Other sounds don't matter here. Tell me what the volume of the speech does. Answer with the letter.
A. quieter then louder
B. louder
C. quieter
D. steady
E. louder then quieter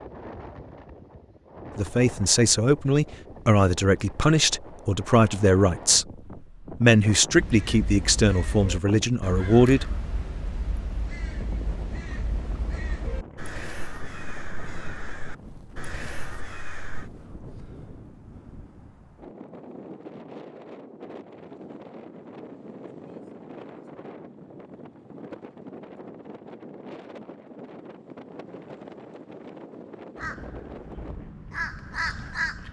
D.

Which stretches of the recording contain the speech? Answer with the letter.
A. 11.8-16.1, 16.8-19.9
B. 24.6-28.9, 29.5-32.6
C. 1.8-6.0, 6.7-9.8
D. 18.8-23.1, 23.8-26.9
C.